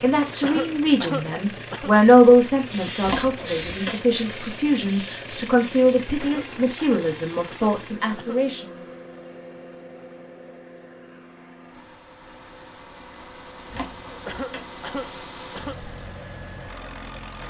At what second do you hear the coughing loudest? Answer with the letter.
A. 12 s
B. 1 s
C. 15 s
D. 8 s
B.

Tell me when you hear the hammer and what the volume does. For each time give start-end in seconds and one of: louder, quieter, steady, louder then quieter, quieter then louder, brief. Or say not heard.
not heard.